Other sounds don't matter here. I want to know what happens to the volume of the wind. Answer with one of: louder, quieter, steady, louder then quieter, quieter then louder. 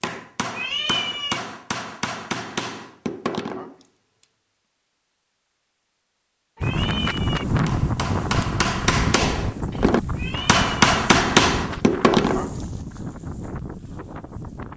quieter.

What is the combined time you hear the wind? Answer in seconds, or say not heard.
8 s.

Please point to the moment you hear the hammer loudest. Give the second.
11 s.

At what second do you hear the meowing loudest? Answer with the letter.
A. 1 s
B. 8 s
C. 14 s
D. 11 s
A.